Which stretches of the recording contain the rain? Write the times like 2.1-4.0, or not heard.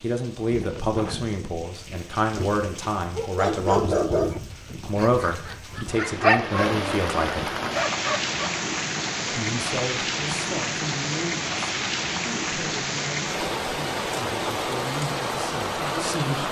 0.0-16.4.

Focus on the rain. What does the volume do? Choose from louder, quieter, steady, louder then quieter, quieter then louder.
louder.